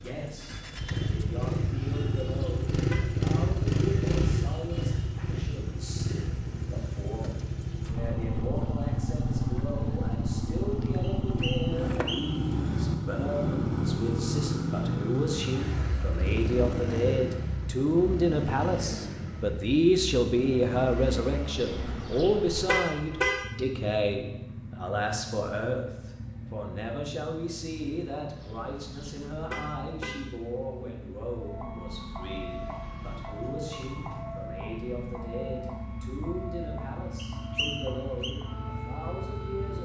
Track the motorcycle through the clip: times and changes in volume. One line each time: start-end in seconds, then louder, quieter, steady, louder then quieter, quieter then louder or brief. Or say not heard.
0.0-39.8 quieter.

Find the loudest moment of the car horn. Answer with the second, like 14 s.
23 s.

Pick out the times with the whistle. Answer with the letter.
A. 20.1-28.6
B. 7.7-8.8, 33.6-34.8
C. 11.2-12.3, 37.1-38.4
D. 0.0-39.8
C.